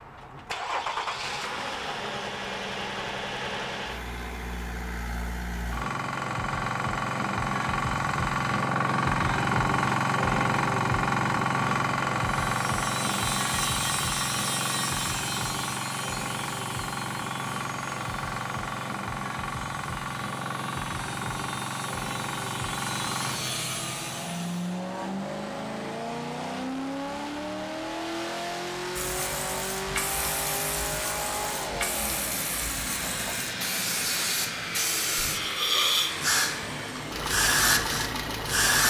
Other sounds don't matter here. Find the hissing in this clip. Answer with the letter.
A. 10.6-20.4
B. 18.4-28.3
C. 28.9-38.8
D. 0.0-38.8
C.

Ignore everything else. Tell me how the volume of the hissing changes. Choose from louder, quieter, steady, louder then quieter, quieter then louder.
louder.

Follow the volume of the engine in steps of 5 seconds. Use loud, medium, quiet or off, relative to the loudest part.
medium, loud, loud, medium, medium, medium, medium, medium.